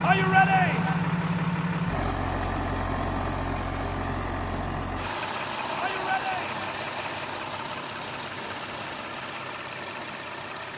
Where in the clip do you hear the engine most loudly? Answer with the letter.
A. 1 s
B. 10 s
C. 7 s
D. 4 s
A.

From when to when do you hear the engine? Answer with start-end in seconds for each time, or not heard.
0.0-10.7.